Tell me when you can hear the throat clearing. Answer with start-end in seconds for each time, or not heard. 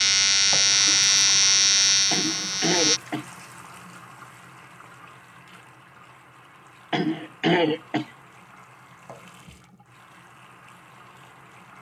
2.1-3.2, 6.9-8.1.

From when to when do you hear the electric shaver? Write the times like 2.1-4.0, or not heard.
0.0-3.0.